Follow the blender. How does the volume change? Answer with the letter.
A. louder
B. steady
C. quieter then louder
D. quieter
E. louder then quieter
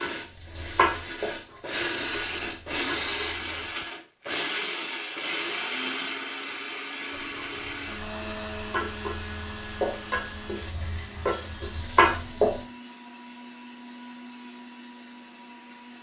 D.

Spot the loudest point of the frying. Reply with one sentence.
The volume of the frying peaks at 12 seconds.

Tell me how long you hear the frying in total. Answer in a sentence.
The frying can be heard for 9 seconds in total.